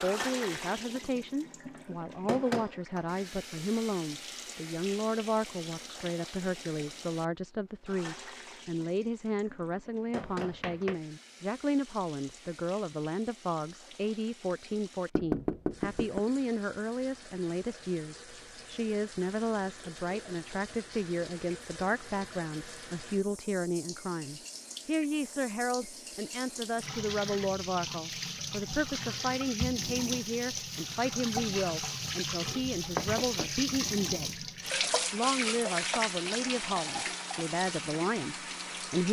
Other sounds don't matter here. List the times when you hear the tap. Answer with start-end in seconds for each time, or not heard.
0.0-39.0.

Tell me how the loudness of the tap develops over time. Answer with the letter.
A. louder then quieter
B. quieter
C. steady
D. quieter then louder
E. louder
D.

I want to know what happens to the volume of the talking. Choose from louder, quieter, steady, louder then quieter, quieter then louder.
steady.